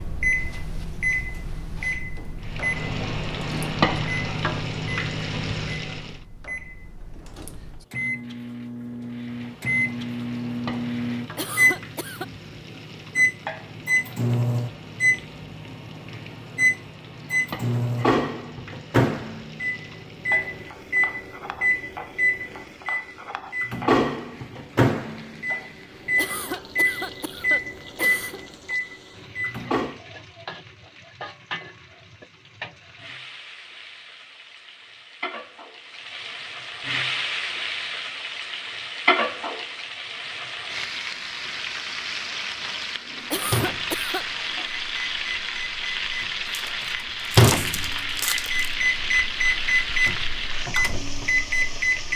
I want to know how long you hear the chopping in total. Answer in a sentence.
You can't hear the chopping here.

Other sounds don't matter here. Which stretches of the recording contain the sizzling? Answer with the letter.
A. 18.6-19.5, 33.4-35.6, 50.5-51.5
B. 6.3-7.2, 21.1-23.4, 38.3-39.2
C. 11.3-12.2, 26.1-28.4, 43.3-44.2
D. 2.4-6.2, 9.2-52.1
D.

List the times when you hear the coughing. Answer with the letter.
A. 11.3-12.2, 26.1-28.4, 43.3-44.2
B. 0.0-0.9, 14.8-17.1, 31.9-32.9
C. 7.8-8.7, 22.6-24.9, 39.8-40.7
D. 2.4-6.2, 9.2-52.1
A.